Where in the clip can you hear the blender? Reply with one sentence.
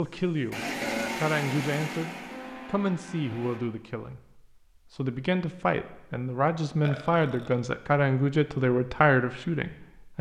The blender can be heard from 0.0 to 3.6 s.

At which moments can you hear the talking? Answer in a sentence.
You can hear the talking from 0.0 to 0.6 s and from 1.2 to 10.1 s.